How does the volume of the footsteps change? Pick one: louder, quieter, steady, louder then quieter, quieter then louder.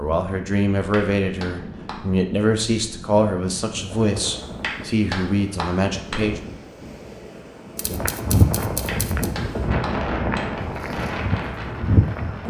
quieter then louder.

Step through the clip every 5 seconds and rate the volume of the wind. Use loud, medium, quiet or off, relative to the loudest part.
medium, loud, loud.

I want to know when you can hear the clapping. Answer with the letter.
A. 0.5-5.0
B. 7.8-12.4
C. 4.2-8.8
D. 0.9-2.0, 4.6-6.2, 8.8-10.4
D.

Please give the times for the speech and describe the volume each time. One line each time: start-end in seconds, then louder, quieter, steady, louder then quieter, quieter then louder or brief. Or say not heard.
0.0-6.5 steady.